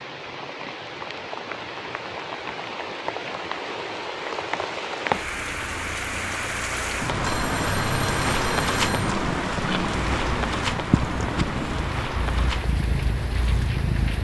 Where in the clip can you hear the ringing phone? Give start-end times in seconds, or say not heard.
7.1-9.2.